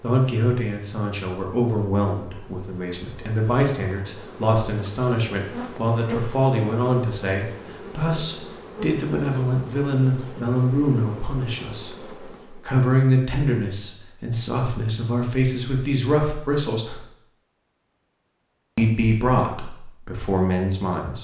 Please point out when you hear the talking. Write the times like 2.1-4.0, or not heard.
0.0-17.1, 18.8-21.1.